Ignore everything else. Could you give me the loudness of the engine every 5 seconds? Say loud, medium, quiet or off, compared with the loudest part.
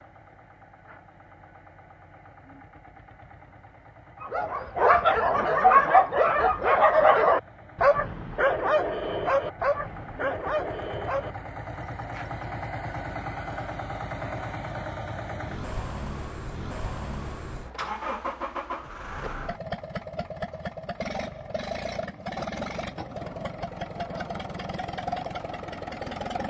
quiet, quiet, loud, loud, loud, loud.